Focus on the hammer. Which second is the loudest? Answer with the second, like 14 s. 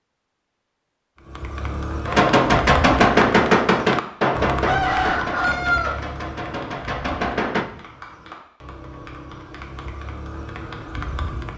3 s.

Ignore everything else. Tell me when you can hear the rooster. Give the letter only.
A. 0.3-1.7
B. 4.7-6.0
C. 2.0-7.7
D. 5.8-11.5
B.